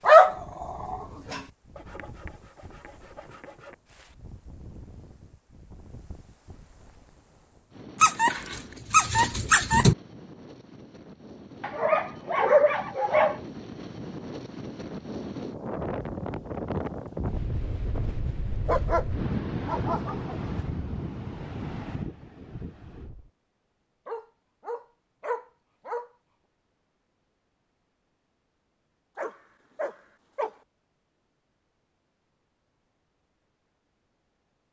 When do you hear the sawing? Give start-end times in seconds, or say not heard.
1.8-3.8.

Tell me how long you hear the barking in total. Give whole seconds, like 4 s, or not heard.
10 s.